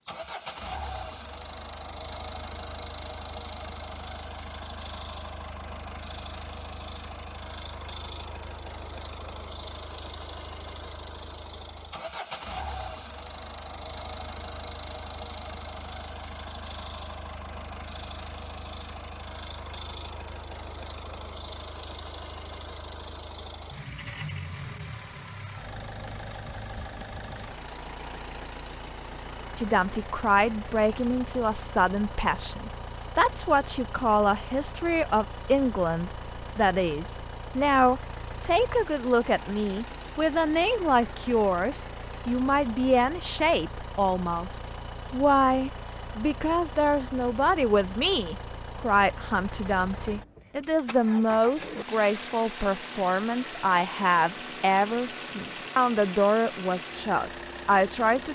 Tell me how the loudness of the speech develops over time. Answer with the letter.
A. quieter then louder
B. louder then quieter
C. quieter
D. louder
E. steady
E.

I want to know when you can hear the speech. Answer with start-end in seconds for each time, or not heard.
29.6-58.2.